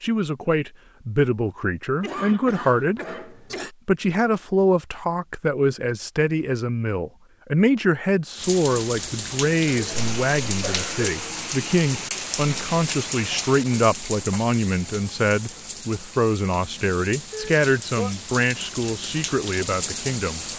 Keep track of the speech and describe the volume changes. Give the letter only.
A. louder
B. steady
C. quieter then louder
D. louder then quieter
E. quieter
B.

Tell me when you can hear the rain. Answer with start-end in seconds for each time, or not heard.
8.3-20.5.